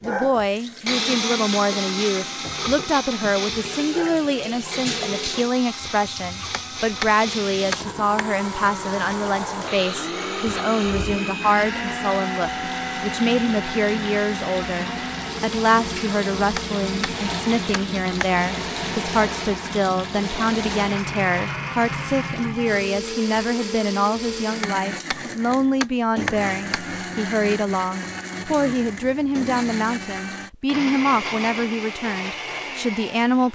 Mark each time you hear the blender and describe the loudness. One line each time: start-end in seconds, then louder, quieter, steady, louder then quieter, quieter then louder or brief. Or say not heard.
0.0-33.5 steady.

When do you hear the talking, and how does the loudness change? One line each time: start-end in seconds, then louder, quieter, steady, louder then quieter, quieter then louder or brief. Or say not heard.
0.0-33.5 steady.